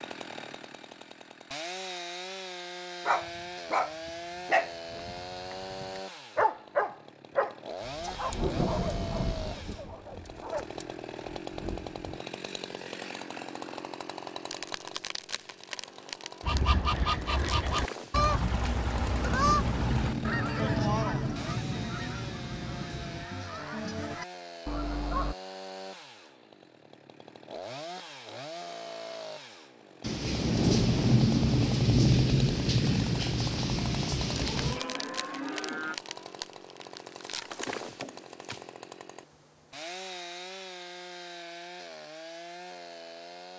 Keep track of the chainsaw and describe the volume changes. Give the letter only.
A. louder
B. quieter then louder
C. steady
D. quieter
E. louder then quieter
C.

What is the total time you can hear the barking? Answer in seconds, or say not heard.
8 s.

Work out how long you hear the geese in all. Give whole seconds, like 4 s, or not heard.
9 s.